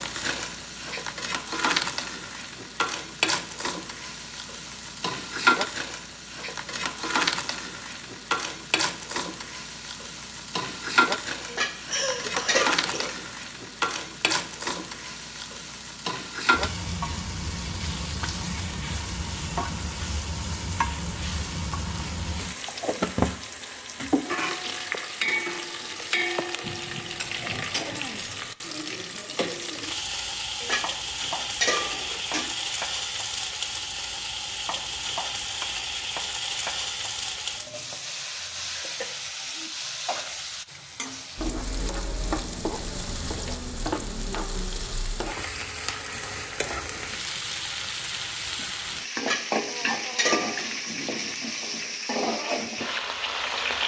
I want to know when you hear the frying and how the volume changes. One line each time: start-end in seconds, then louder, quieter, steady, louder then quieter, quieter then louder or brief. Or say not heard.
0.0-53.8 steady.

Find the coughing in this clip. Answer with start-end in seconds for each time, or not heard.
11.8-13.2, 26.6-28.5, 38.8-40.4.